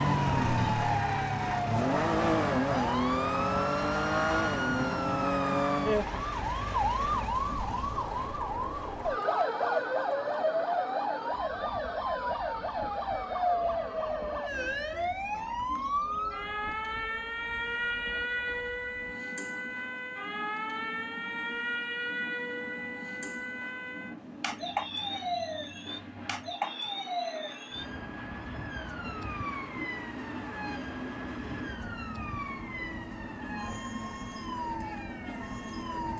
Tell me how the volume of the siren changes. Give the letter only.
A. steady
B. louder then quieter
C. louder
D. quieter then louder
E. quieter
E.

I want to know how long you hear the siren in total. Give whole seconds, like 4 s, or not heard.
36 s.